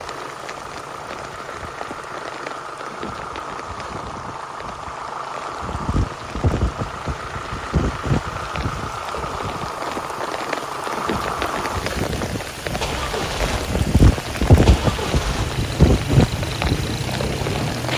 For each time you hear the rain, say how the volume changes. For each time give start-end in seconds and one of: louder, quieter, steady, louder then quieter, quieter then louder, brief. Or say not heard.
0.0-17.9 louder.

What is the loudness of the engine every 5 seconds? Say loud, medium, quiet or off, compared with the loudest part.
medium, loud, loud, loud.